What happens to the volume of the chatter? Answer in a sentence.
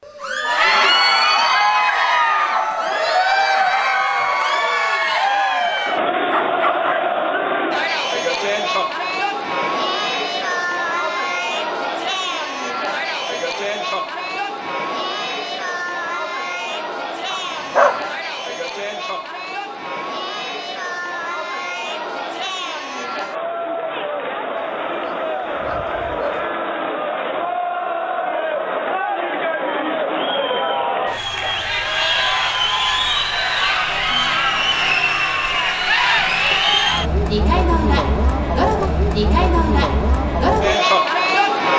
The volume of the chatter goes down, then up.